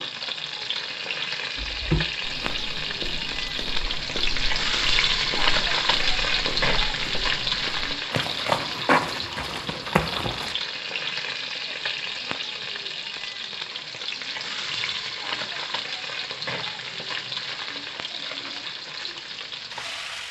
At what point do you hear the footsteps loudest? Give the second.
9 s.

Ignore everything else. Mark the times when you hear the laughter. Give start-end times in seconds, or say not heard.
not heard.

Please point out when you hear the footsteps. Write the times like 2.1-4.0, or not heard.
1.6-10.6.